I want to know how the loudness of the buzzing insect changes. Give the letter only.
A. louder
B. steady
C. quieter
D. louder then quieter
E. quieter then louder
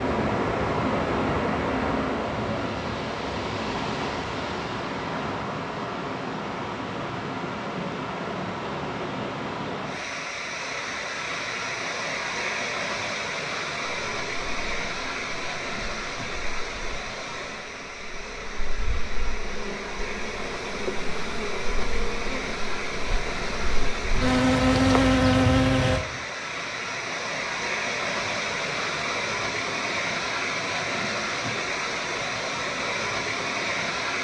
A.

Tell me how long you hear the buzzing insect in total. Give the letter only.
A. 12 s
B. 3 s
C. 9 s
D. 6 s
A.